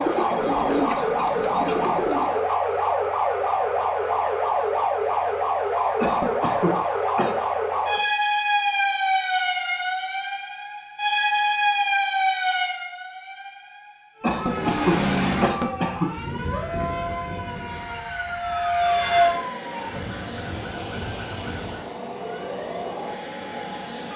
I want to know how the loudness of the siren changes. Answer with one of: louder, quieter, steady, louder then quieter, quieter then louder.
quieter.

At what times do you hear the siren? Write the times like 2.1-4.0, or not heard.
0.0-24.1.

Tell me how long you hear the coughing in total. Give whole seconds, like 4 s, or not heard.
3 s.